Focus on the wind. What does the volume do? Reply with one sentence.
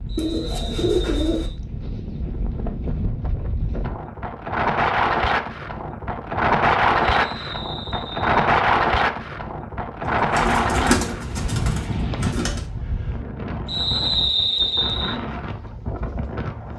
The loudness of the wind goes up, then down.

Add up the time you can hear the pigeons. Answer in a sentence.
The pigeons can be heard for 4 seconds in total.